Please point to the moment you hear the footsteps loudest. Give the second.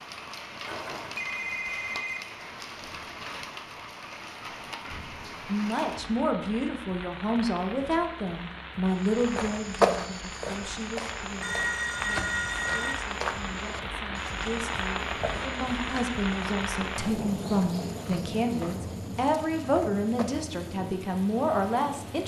10 s.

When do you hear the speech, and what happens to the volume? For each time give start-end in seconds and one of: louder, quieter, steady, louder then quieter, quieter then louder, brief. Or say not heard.
5.5-22.2 quieter then louder.